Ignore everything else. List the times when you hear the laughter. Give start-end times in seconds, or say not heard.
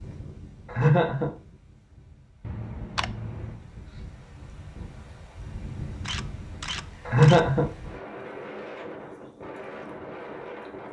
0.7-1.3, 7.0-7.7.